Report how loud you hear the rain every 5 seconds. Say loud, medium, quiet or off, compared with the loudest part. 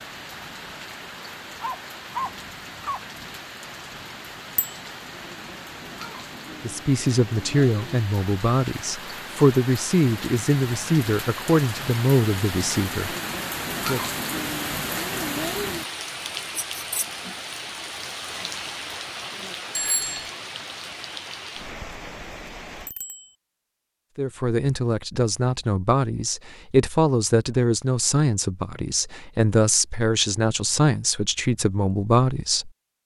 medium, medium, loud, loud, medium, off, off.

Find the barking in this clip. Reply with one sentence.
The barking can be heard from 1.6 to 3.0 s.